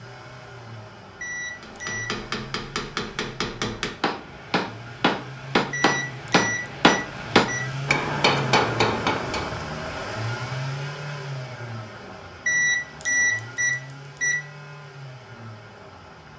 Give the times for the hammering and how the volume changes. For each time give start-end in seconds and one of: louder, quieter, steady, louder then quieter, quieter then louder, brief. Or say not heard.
1.6-9.7 louder.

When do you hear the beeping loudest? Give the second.
13 s.